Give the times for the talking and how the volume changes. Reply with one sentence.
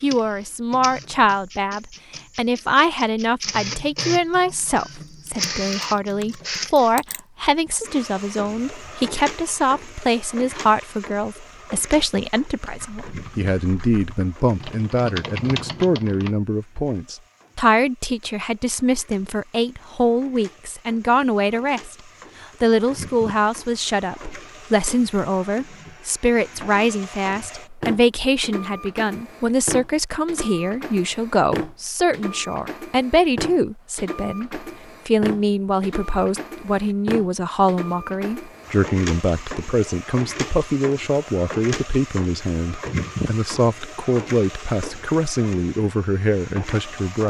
The talking can be heard from 0.0 to 47.2 s, at a steady volume.